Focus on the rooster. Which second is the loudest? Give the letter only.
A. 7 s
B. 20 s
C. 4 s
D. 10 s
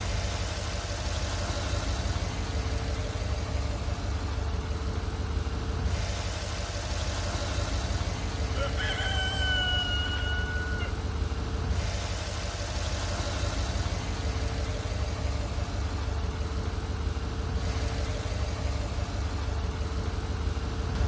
D.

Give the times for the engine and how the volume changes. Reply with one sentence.
You can hear the engine from 0.0 to 21.0 s, at a steady volume.